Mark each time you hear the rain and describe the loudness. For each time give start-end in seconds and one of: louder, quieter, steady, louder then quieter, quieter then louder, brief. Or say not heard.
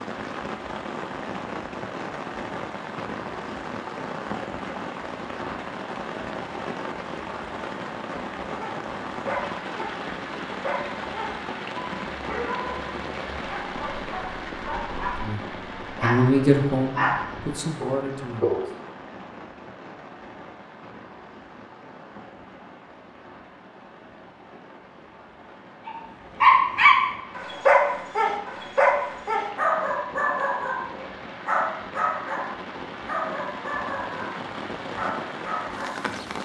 0.0-36.4 quieter then louder.